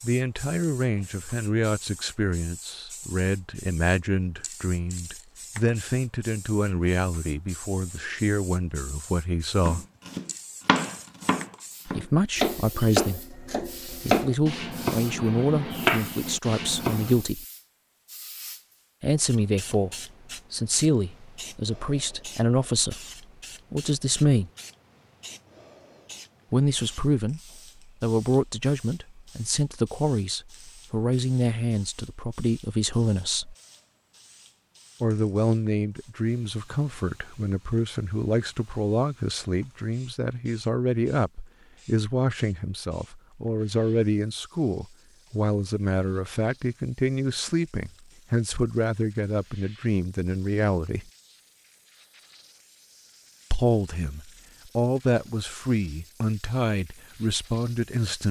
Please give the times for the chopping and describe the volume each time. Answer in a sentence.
You can hear the chopping from 9.6 to 17.2 s, at a steady volume.